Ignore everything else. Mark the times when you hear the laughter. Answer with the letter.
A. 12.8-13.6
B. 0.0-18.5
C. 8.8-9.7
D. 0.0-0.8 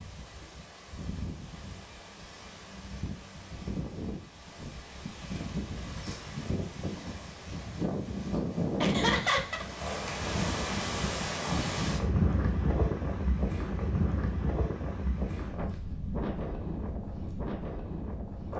C.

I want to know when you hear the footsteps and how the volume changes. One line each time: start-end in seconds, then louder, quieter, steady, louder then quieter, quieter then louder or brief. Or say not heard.
not heard.